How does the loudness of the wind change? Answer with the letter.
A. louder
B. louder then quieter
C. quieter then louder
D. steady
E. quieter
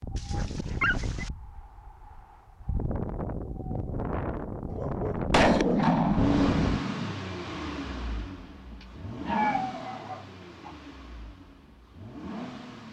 C.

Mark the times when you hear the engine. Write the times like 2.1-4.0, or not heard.
6.2-12.8.